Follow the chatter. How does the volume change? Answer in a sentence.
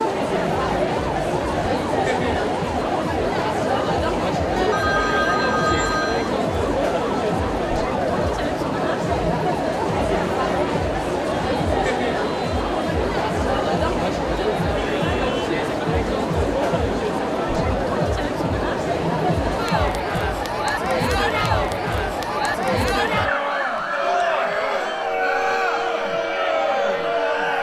The loudness of the chatter stays about the same.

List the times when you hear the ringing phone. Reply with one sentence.
The ringing phone can be heard from 4.5 to 6.3 s.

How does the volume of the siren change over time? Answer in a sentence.
The volume of the siren stays about the same.